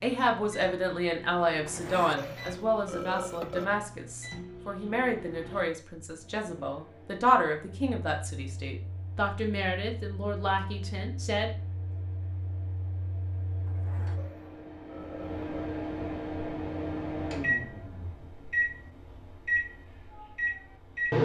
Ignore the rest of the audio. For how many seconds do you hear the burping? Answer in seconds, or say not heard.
4 s.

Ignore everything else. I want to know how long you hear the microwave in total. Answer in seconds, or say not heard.
21 s.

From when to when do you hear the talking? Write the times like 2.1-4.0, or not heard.
0.0-11.5.